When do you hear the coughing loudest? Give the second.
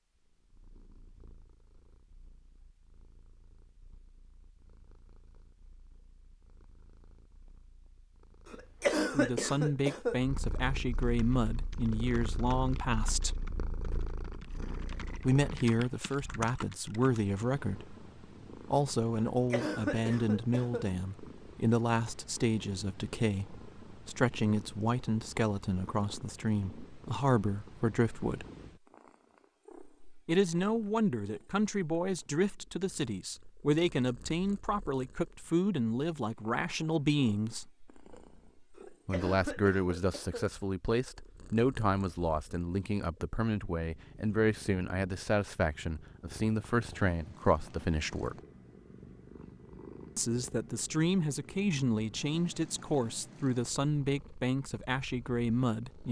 9 s.